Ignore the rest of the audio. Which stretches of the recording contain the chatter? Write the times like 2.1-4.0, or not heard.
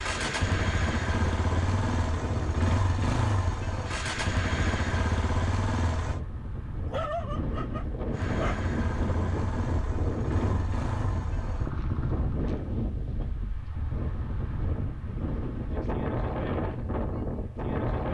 not heard.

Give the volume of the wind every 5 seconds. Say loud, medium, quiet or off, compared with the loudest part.
medium, loud, loud, loud.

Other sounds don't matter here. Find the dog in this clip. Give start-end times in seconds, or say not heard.
6.8-8.6.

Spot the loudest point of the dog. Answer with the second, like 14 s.
7 s.